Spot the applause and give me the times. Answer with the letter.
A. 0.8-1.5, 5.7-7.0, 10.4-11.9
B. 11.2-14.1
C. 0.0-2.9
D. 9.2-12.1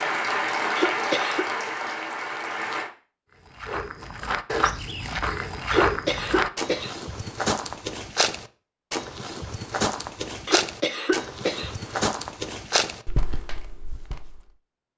C.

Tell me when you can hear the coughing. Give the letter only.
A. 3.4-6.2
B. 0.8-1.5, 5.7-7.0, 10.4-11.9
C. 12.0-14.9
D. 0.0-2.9
B.